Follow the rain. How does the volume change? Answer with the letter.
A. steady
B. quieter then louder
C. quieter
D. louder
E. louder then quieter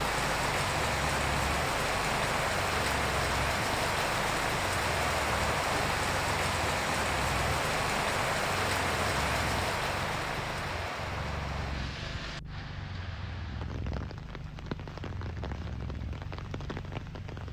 C.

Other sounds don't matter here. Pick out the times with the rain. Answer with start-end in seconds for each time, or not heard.
0.0-17.4.